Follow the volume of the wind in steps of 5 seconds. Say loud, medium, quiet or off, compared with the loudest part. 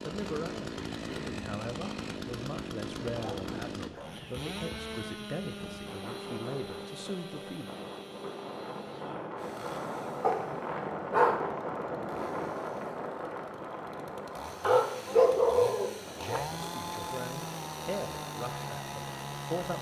medium, medium, loud, medium.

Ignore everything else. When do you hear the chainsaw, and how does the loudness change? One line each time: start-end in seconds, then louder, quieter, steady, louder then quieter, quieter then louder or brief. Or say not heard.
0.0-19.7 quieter then louder.